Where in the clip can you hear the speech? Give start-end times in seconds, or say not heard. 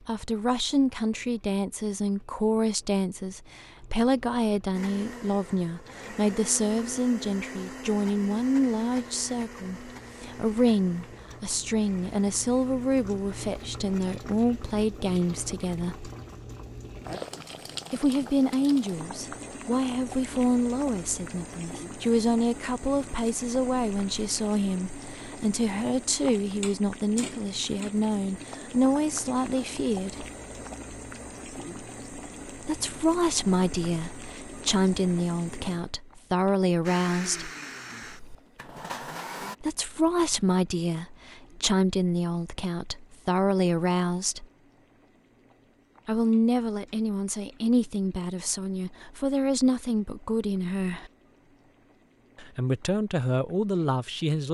0.1-16.1, 17.9-30.2, 32.6-37.5, 39.6-44.5, 46.0-51.1, 52.4-54.4.